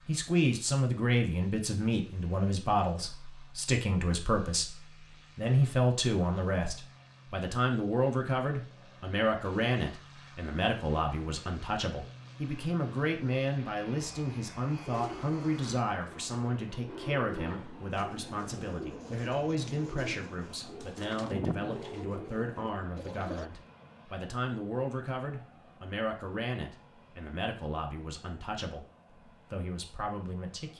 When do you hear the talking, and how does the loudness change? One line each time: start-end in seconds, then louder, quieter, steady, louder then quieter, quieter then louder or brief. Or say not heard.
0.1-30.7 quieter.